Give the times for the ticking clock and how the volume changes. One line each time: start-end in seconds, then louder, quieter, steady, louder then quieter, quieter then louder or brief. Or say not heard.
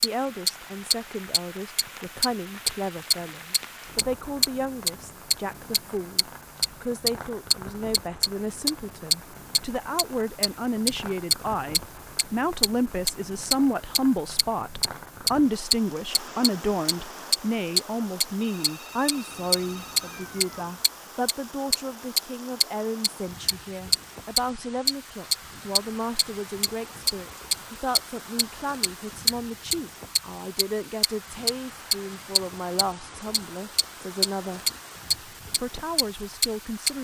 0.0-36.9 steady.